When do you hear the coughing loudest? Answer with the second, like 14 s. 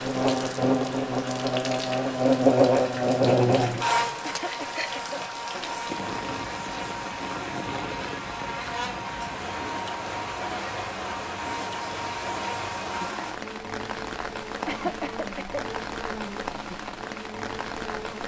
15 s.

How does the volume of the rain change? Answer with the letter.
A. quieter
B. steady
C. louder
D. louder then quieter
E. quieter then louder
B.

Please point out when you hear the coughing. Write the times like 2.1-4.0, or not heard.
4.2-5.2, 14.7-15.6.